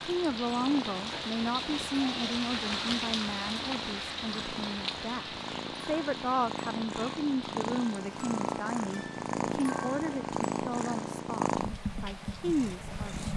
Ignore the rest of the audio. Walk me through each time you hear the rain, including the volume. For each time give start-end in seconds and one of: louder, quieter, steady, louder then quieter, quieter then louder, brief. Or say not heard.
0.0-13.2 quieter.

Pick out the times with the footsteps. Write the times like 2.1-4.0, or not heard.
not heard.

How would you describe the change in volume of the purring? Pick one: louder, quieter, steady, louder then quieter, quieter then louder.
louder.